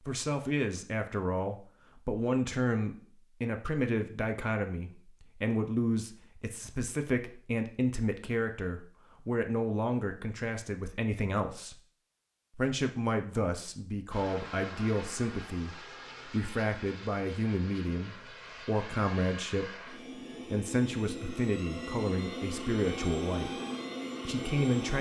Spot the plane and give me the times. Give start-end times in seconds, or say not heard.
14.1-24.9.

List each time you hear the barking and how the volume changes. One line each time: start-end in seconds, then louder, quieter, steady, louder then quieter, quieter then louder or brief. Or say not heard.
not heard.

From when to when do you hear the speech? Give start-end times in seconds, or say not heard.
0.1-11.8, 12.6-23.6, 24.2-24.9.